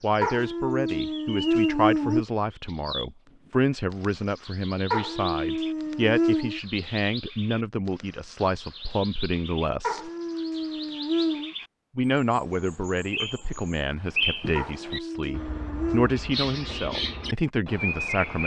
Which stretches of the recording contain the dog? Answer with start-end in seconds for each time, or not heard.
0.2-2.2, 4.9-6.6, 9.8-11.6, 14.6-16.1.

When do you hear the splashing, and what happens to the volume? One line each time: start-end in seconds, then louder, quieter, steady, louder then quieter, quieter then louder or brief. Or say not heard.
not heard.